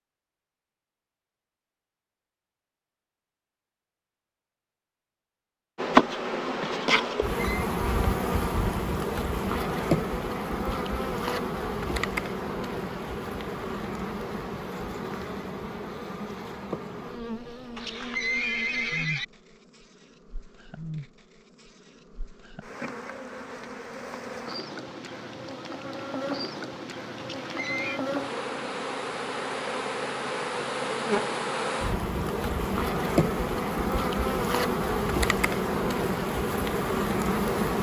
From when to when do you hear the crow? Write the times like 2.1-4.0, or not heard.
not heard.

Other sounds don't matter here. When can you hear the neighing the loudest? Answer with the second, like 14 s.
18 s.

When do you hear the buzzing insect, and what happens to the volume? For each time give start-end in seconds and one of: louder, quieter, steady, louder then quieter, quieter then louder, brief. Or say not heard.
5.8-37.7 quieter then louder.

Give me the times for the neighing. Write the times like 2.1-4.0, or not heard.
7.0-7.7, 17.8-19.2, 27.1-28.0.